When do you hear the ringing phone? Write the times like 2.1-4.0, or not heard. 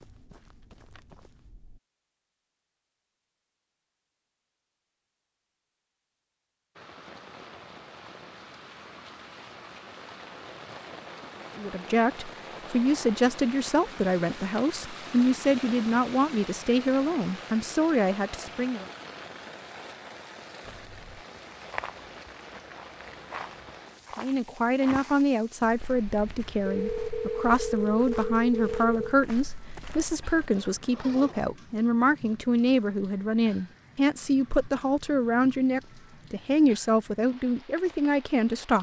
26.6-29.1.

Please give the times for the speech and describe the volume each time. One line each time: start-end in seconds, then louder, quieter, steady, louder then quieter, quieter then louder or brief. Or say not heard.
11.6-18.9 steady
24.1-38.7 steady.